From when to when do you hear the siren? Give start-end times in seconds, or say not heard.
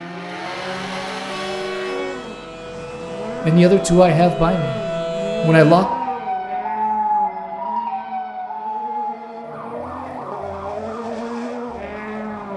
0.0-12.5.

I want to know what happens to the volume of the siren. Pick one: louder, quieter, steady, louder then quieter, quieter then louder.
louder then quieter.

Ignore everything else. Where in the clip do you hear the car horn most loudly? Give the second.
2 s.